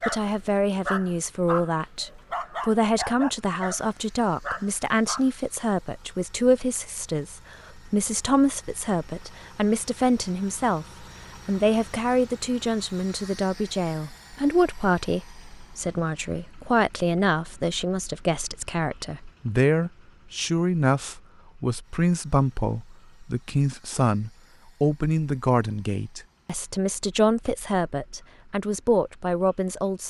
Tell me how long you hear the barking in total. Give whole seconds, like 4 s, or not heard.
5 s.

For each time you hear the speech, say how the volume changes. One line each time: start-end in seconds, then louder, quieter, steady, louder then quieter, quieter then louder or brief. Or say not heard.
0.1-30.0 steady.